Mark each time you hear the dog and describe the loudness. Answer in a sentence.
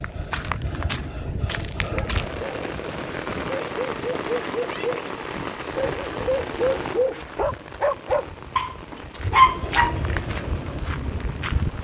You can hear the dog from 1.7 to 10.0 s, getting louder.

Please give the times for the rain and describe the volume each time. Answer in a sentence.
The rain can be heard from 1.9 to 11.7 s, getting quieter.